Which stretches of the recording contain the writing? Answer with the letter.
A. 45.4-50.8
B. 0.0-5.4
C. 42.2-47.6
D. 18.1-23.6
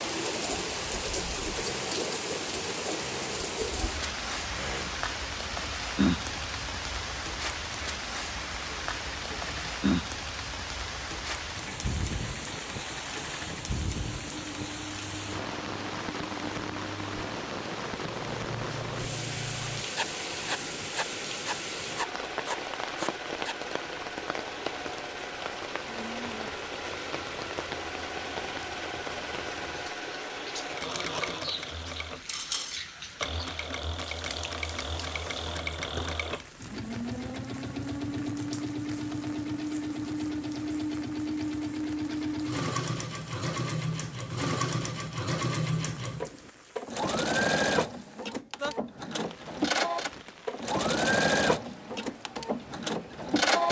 D.